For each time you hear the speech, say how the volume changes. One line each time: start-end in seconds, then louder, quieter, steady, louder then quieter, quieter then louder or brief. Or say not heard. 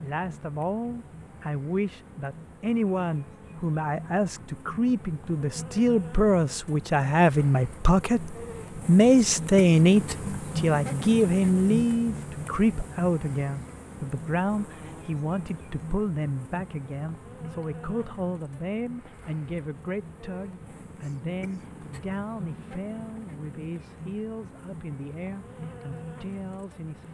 0.0-27.0 louder then quieter.